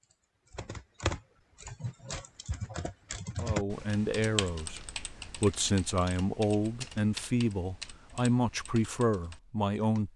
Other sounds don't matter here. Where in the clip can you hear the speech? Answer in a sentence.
The speech can be heard from 3.4 to 10.1 s.